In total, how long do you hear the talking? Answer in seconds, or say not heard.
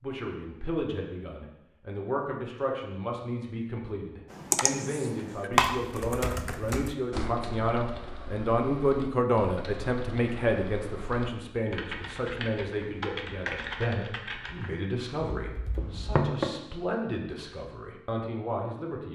19 s.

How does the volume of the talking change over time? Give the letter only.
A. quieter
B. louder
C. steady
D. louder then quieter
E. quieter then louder
D.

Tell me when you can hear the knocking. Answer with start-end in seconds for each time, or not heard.
15.8-16.5.